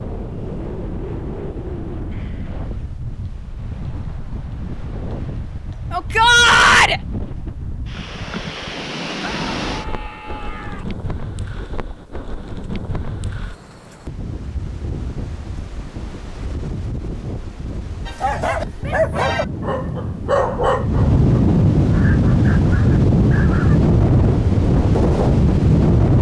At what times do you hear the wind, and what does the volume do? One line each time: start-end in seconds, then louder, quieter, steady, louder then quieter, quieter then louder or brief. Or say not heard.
0.0-26.1 louder.